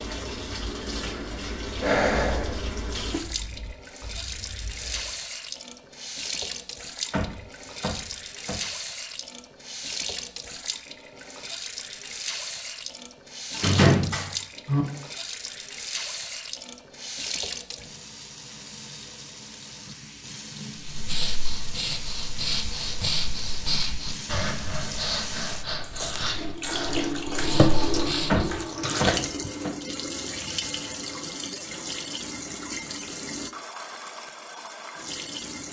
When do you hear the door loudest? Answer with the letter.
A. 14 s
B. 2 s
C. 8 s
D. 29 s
A.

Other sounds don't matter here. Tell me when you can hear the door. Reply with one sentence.
You can hear the door from 7.1 to 8.6 s, from 13.6 to 14.8 s and from 28.3 to 29.7 s.